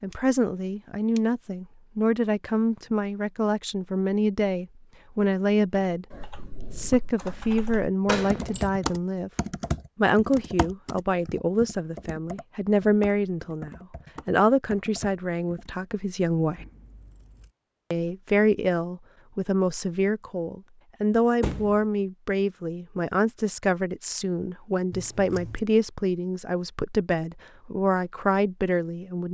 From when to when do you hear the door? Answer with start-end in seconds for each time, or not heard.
8.1-8.7, 21.4-21.8.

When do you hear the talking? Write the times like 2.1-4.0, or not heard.
0.0-6.0, 6.7-9.3, 9.9-16.6, 17.9-29.2.